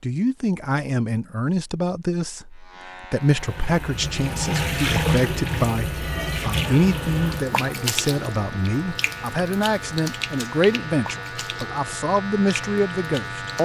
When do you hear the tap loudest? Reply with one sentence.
The volume of the tap peaks at 5 seconds.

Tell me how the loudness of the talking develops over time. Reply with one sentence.
The loudness of the talking stays about the same.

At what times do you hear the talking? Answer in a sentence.
The talking can be heard from 0.0 to 13.6 s.